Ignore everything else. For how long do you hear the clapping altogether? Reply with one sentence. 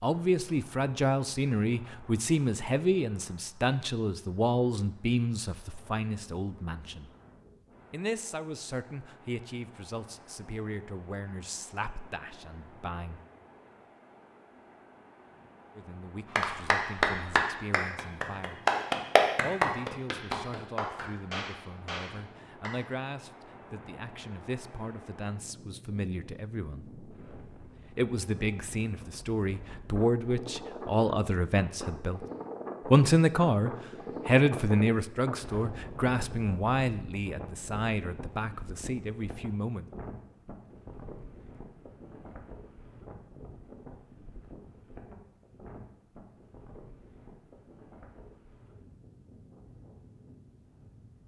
You can hear the clapping for 6 seconds altogether.